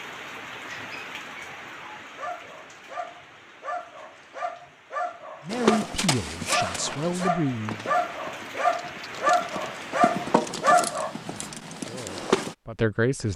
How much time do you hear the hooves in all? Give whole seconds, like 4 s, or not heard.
7 s.